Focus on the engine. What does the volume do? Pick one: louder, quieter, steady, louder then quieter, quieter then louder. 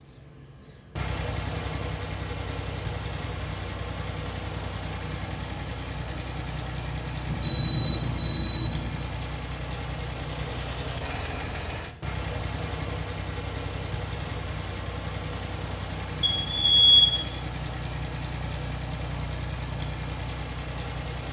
steady.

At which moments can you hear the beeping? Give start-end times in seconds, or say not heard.
7.2-9.1, 16.2-17.3.